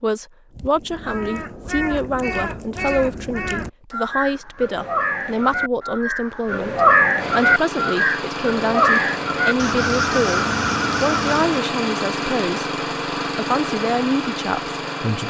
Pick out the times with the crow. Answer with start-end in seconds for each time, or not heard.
0.6-11.6.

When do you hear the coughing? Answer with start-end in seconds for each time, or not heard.
not heard.